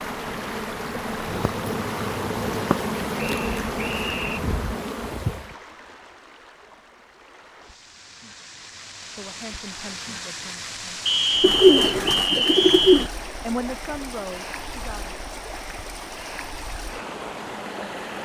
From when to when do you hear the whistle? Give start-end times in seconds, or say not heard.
3.1-4.4, 11.1-13.1.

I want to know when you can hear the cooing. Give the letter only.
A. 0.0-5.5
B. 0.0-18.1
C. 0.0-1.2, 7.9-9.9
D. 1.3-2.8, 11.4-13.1
D.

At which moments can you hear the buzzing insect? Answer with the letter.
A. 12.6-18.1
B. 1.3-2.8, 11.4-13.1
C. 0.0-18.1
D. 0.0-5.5
D.